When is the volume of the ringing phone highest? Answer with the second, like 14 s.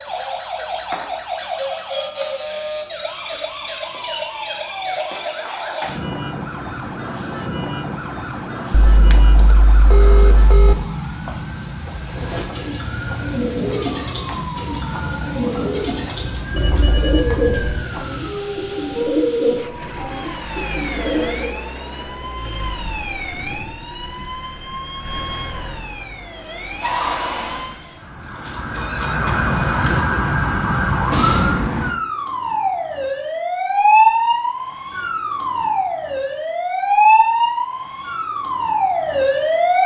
10 s.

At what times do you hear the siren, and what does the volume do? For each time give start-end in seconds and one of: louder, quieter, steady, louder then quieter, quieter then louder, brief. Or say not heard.
0.0-39.8 louder.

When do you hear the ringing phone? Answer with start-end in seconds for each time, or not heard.
8.8-10.8, 16.6-17.9, 28.7-30.0.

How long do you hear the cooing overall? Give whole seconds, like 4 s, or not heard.
10 s.